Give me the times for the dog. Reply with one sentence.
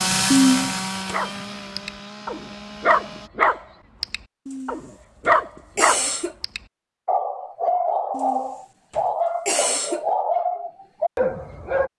You can hear the dog from 1.1 to 11.9 s.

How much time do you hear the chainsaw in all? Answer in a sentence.
You can hear the chainsaw for 3 seconds altogether.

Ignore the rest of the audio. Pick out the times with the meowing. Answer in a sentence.
The meowing can't be heard in this clip.